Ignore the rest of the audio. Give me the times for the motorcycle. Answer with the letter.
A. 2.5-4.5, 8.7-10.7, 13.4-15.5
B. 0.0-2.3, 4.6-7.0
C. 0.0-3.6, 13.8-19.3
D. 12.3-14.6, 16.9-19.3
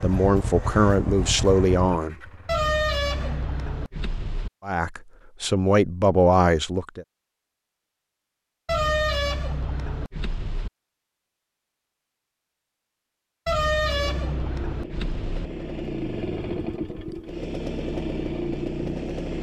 C.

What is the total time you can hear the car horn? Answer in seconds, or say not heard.
6 s.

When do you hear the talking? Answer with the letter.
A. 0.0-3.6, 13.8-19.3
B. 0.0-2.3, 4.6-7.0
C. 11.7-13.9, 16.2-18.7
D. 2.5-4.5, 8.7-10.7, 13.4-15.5
B.